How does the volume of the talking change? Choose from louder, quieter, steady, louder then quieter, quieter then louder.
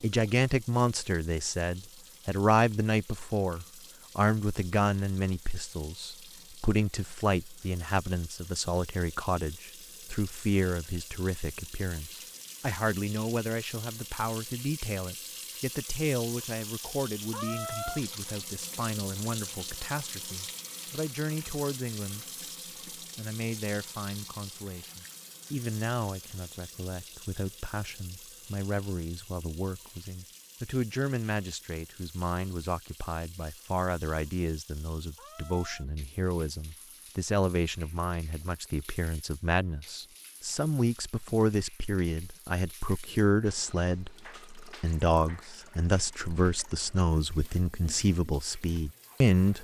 quieter then louder.